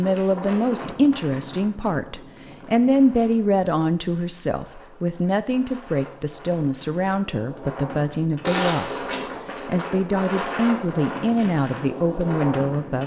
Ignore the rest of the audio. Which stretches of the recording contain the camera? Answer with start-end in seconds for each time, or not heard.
8.4-9.2.